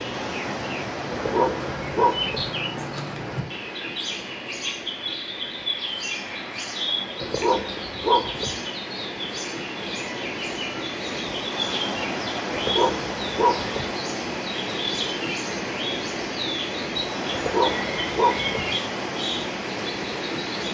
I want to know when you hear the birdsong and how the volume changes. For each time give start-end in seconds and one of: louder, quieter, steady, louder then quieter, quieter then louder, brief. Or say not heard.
0.0-20.6 steady.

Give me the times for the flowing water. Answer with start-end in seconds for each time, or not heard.
0.0-20.6.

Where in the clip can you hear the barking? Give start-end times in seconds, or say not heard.
1.1-2.5, 7.2-8.6, 12.5-13.9, 17.3-18.7.